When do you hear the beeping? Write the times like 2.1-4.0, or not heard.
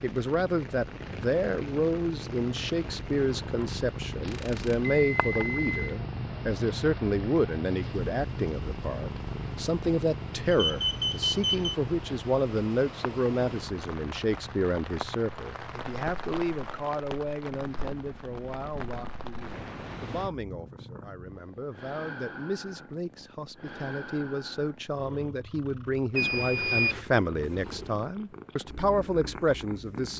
4.2-5.9, 10.5-11.8, 26.1-27.0.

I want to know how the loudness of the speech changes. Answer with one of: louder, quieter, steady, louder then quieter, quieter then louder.
quieter then louder.